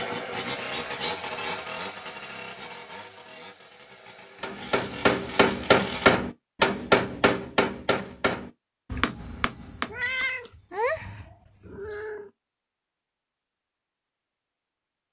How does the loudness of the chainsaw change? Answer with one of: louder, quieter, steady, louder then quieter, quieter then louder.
quieter then louder.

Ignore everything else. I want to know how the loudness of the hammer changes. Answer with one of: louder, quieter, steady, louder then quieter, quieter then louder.
quieter.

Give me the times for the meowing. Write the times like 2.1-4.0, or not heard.
9.8-12.3.